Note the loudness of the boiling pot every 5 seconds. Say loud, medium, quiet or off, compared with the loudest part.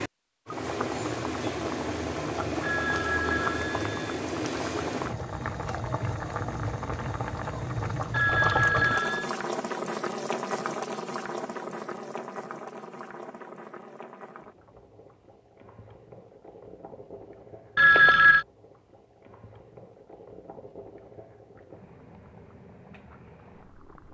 loud, loud, medium, quiet, quiet.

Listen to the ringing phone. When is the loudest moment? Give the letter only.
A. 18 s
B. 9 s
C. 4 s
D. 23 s
A.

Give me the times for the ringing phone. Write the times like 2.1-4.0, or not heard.
2.6-4.2, 8.1-9.3, 17.8-18.4.